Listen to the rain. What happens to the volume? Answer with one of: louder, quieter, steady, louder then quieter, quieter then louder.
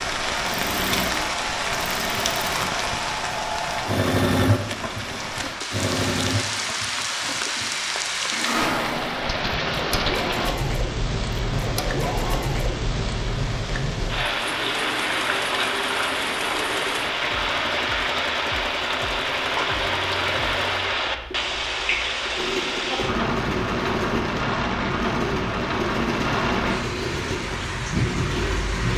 steady.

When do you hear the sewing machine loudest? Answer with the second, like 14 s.
4 s.